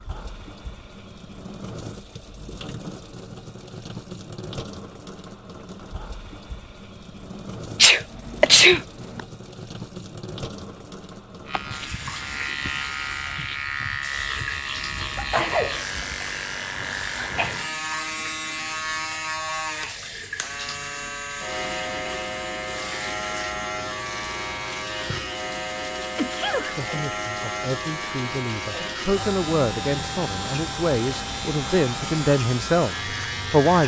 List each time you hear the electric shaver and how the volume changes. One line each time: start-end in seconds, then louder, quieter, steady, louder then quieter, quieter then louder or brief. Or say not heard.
11.4-33.8 steady.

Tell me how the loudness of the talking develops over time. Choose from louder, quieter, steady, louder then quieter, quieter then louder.
louder.